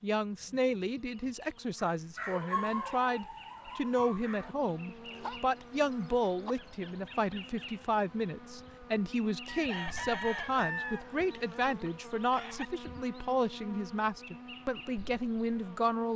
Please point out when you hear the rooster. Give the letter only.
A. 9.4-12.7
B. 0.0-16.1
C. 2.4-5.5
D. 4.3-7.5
A.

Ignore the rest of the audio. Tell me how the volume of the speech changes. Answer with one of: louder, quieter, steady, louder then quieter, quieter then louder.
steady.